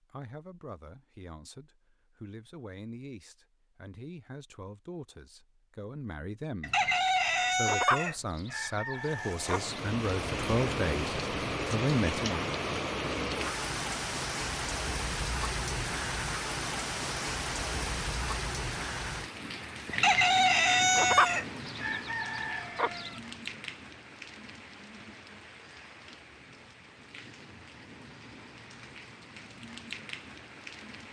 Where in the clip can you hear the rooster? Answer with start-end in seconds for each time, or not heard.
6.6-9.9, 19.9-23.1.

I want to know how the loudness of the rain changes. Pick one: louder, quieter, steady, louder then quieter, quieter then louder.
quieter.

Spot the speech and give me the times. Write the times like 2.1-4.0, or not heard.
0.0-12.5.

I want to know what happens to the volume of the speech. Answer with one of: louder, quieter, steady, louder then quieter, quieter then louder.
louder.